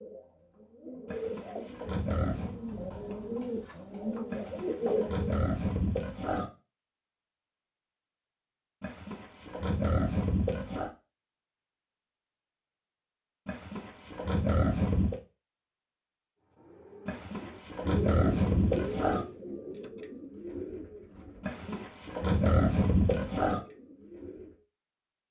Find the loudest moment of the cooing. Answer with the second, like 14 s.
5 s.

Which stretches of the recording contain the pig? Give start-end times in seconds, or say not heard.
1.1-2.6, 4.3-6.5, 8.8-10.9, 13.4-15.2, 17.1-19.2, 21.4-23.6.